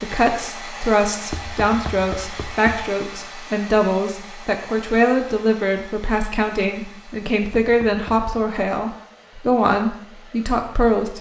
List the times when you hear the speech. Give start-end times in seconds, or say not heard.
0.0-11.1.